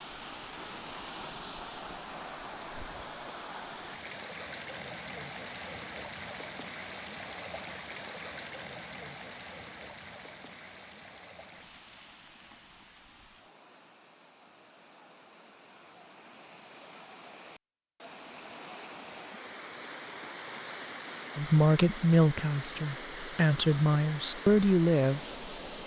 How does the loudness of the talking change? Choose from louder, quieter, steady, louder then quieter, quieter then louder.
quieter then louder.